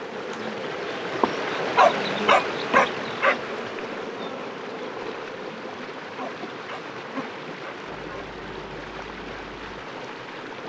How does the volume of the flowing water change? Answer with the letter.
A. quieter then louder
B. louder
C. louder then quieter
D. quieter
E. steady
D.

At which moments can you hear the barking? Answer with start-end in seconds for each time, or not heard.
1.8-3.4, 6.2-8.2.